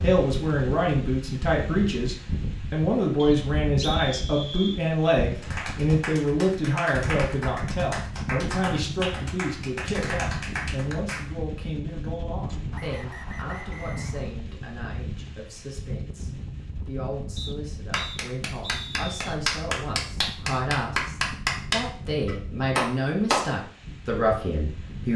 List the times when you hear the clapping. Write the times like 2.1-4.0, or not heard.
5.3-11.2, 17.9-23.4.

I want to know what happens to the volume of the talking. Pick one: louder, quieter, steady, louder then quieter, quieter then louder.
quieter then louder.